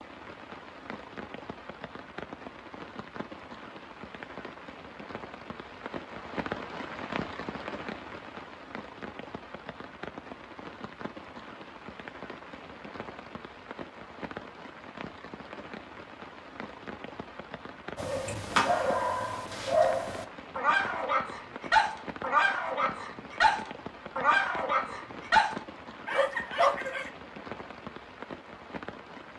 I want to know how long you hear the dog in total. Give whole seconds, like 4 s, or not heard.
9 s.